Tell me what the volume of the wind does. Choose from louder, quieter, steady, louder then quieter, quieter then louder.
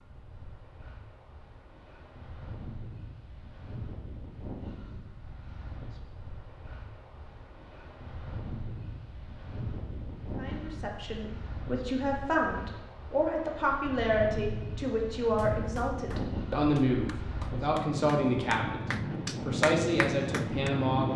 louder.